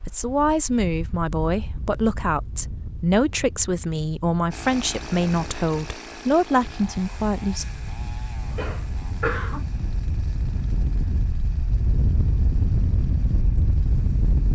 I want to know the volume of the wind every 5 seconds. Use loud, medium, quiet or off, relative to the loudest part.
quiet, medium, loud.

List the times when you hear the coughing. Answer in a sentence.
The coughing can be heard from 8.5 to 9.6 s.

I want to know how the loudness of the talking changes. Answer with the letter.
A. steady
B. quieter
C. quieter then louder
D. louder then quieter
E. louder
A.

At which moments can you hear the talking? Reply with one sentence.
The talking can be heard from 0.1 to 7.7 s.